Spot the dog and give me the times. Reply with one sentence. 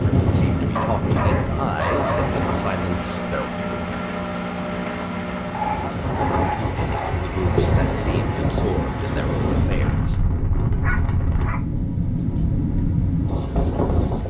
The dog can be heard from 0.8 to 2.3 s, from 5.5 to 7.2 s and from 10.8 to 11.7 s.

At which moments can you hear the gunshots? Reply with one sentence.
You can't hear the gunshots here.